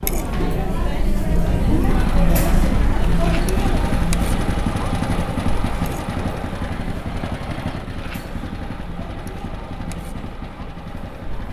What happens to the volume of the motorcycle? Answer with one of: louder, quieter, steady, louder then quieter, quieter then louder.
quieter.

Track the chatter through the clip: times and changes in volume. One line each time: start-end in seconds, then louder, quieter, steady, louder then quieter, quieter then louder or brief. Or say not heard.
0.0-11.4 quieter.